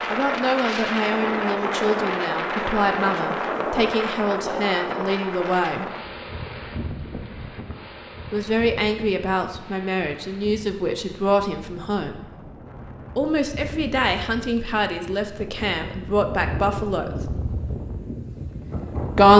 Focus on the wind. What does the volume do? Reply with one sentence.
The volume of the wind goes down, then up.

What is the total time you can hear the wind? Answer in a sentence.
You can hear the wind for 19 seconds altogether.